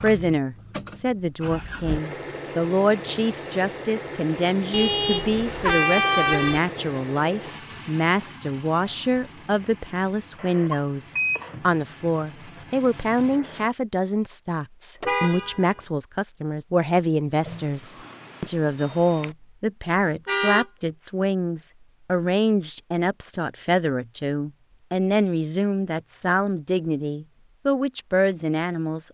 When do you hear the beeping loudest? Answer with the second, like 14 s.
11 s.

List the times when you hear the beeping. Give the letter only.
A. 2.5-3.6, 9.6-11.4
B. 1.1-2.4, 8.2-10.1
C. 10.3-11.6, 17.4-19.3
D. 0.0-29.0
C.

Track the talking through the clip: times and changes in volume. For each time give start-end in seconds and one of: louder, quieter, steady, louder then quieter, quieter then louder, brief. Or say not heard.
0.0-29.0 steady.